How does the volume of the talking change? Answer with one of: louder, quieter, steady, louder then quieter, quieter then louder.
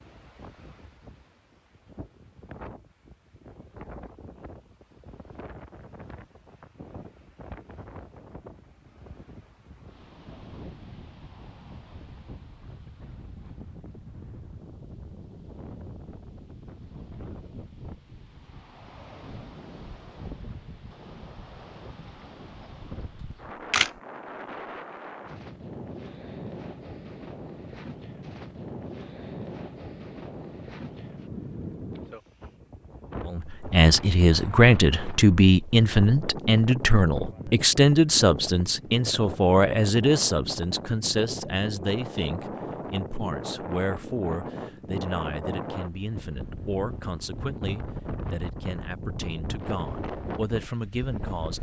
quieter.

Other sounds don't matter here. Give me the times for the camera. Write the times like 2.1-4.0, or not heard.
23.2-23.9.